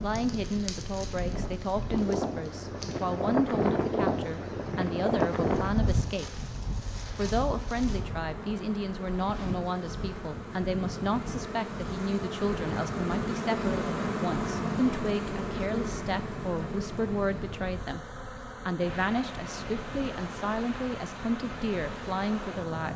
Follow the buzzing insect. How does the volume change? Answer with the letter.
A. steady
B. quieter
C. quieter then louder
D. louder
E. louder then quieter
E.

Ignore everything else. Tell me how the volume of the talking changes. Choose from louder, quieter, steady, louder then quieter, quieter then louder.
steady.